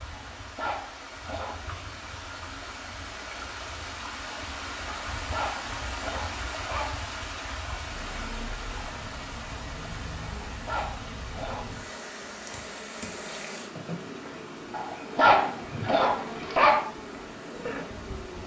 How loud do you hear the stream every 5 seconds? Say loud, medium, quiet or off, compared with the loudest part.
loud, loud, medium, medium.